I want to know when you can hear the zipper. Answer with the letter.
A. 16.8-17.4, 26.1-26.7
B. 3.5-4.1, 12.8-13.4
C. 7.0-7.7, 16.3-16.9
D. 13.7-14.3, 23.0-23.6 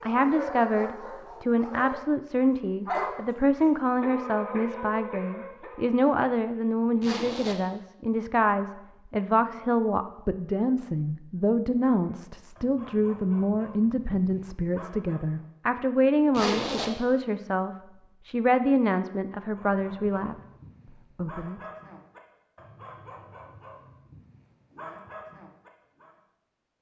C.